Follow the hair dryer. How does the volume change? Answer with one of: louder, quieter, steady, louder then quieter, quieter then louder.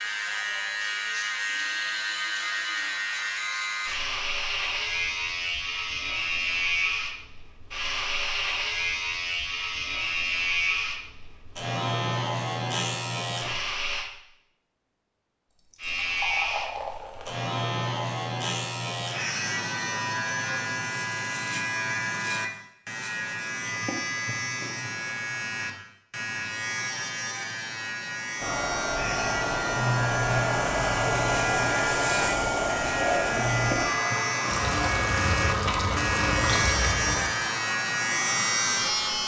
quieter.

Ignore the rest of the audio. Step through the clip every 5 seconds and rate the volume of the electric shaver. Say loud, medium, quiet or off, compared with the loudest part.
loud, loud, loud, loud, loud, medium, loud, loud.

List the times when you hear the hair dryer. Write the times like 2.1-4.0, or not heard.
28.4-39.2.